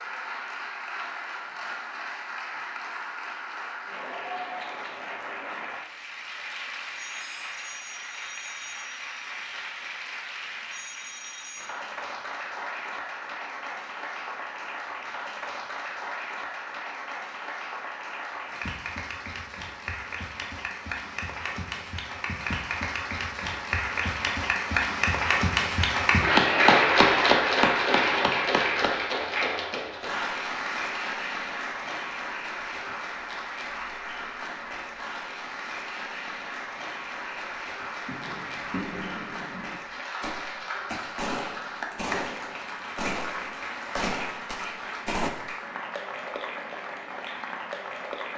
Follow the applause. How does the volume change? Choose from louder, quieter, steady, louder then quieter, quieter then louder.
louder then quieter.